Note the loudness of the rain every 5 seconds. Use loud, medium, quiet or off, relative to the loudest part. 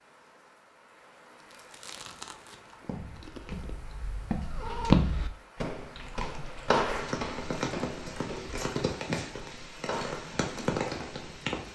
quiet, loud, loud.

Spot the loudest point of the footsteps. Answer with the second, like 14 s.
5 s.